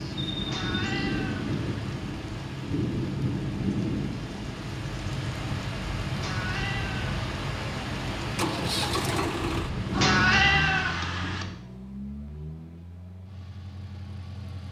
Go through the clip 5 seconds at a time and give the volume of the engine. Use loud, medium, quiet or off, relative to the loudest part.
off, loud, medium.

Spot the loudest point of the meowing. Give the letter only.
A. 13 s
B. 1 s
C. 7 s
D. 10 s
D.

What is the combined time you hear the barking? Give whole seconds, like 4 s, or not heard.
not heard.